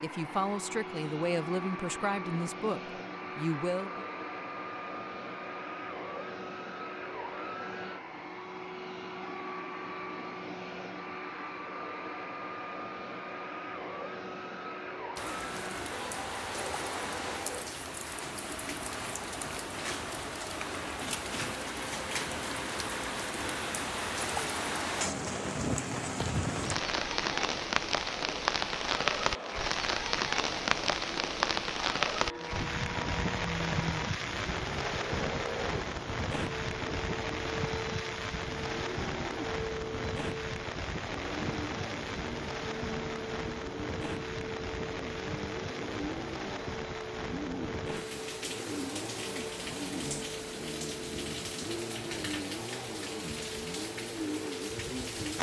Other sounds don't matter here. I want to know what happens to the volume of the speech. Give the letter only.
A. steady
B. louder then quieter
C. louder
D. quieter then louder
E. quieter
A.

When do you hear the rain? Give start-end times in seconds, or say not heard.
15.2-55.3.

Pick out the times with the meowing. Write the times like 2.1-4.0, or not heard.
26.1-26.8.